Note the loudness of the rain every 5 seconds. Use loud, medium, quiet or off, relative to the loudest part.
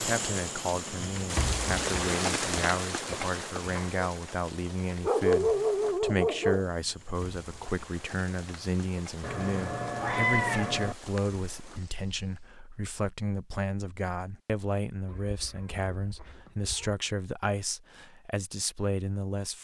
loud, quiet, quiet, off.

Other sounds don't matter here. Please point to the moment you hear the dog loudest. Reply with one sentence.
The loudest moment of the dog is at 5 seconds.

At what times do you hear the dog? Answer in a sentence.
You can hear the dog from 5.0 to 6.7 s.